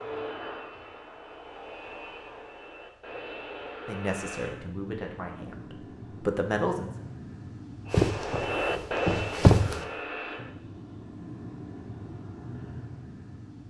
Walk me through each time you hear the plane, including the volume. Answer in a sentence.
You can hear the plane from 0.0 to 13.6 s, getting louder then quieter.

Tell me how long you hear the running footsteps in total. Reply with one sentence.
The running footsteps can be heard for 2 seconds in total.